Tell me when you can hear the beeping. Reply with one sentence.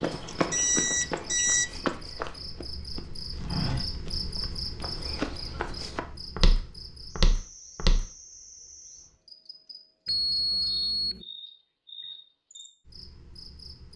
The beeping can be heard from 0.2 to 1.6 s and from 10.1 to 11.2 s.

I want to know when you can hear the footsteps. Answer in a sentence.
The footsteps can be heard from 0.0 to 8.1 s.